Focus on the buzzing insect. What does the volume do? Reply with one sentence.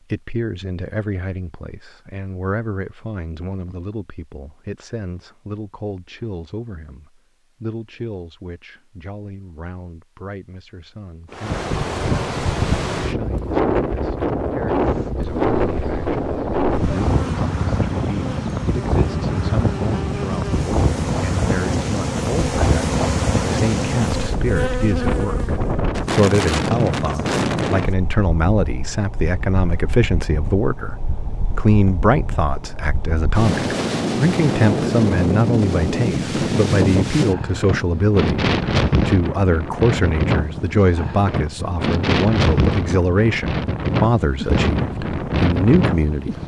The volume of the buzzing insect goes up.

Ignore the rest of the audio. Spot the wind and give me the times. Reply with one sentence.
You can hear the wind from 11.3 to 46.4 s.